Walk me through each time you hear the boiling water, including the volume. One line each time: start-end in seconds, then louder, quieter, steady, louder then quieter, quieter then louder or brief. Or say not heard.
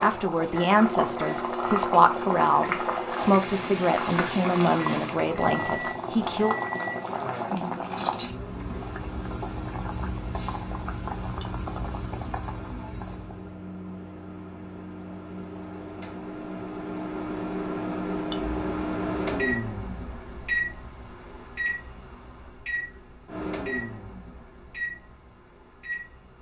0.0-13.6 quieter.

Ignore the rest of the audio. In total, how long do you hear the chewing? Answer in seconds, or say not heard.
not heard.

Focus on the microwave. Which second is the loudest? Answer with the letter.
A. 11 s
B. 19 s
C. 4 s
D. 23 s
B.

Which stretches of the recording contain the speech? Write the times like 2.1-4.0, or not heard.
0.0-6.5.